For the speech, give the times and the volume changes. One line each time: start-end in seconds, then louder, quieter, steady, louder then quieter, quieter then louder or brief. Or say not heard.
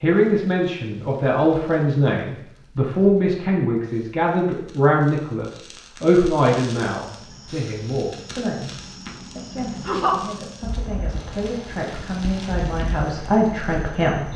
0.0-14.3 quieter then louder.